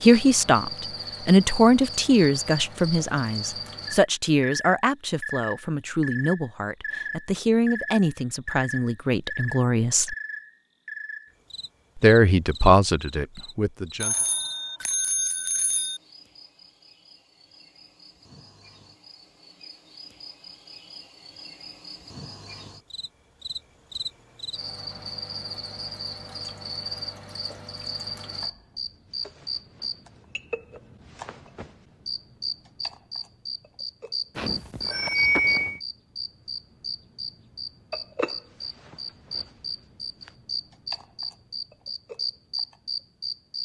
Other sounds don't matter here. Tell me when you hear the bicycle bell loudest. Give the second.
35 s.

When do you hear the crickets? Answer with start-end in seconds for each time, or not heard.
0.0-43.5.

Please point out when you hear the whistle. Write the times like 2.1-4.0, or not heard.
not heard.